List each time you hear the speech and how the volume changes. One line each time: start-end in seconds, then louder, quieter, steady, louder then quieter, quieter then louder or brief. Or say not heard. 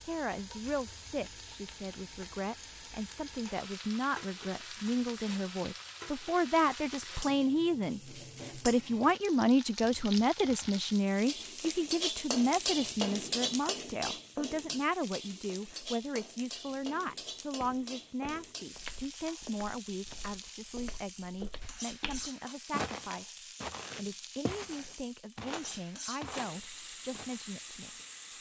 0.0-28.3 louder then quieter.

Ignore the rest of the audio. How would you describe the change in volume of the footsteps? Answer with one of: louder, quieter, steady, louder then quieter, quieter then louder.
louder.